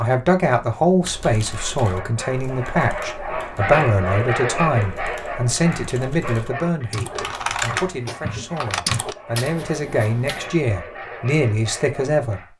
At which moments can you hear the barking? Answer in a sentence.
The barking can be heard from 1.4 to 12.5 s.